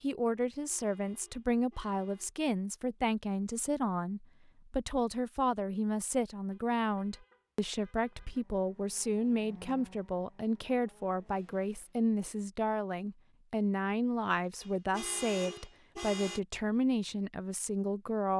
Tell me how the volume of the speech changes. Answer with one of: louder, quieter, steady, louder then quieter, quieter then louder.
steady.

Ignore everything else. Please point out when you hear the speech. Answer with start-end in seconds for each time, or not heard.
0.0-18.3.